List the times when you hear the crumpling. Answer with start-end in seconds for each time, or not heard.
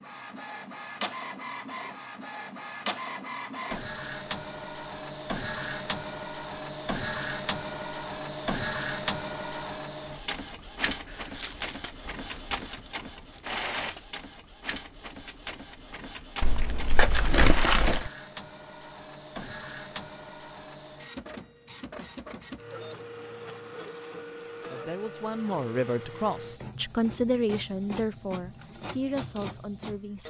11.1-13.5, 16.4-18.1.